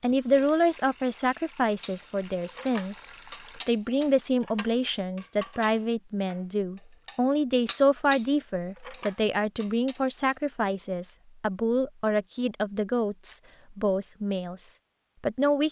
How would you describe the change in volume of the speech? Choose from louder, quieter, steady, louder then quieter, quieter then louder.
steady.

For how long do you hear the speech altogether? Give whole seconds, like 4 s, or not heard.
15 s.